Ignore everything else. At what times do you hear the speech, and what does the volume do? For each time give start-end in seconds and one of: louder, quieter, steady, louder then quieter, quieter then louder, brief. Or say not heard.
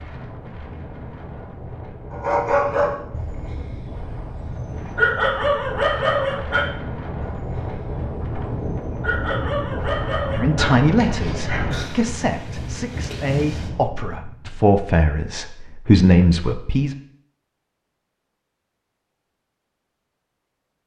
10.3-16.9 quieter then louder.